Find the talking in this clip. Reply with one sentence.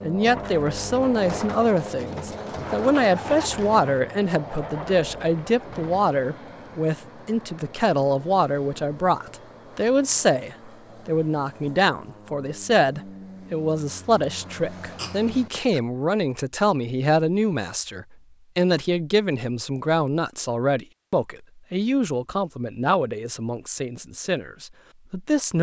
The talking can be heard from 0.0 to 25.5 s.